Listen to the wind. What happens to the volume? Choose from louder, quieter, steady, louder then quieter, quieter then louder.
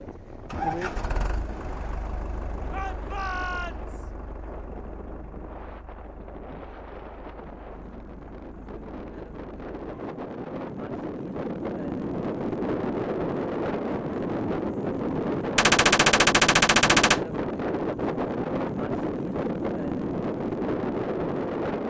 louder.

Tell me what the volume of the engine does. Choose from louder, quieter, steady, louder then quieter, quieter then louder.
quieter.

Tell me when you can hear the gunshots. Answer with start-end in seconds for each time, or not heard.
15.6-17.2.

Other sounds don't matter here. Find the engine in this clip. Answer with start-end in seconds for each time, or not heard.
0.0-10.2.